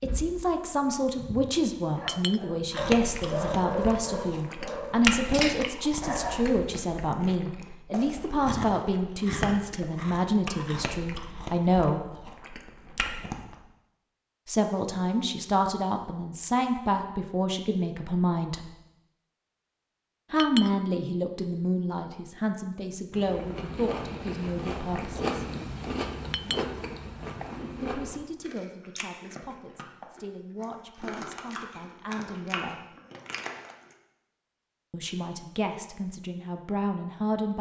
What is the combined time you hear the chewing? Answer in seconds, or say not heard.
22 s.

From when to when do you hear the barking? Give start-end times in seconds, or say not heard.
0.0-6.5.